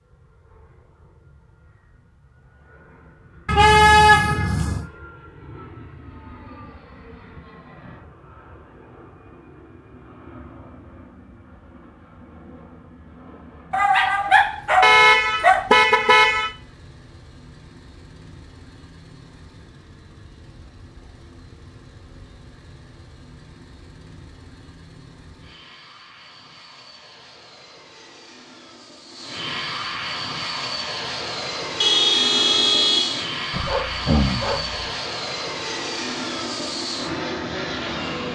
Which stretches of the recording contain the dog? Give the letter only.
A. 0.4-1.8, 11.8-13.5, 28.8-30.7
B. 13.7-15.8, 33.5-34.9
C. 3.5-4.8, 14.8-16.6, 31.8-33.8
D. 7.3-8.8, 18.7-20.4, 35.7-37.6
B.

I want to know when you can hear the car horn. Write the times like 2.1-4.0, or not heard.
3.5-4.8, 14.8-16.6, 31.8-33.8.